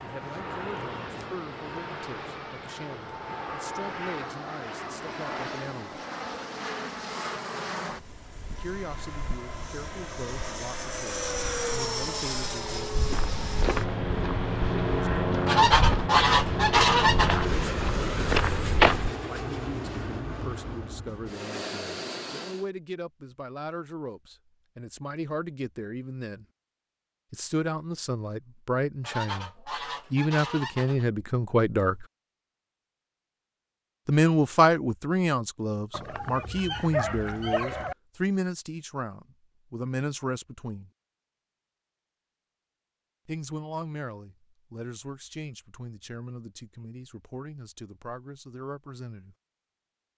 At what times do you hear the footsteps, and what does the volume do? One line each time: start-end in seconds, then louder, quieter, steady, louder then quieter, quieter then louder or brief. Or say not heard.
12.9-19.1 quieter then louder.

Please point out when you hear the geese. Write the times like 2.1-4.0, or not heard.
15.4-17.4, 29.0-31.1.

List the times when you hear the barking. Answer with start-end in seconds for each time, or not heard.
35.9-38.0.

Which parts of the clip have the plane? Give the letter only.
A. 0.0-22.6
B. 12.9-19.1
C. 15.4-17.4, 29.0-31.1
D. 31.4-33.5
A.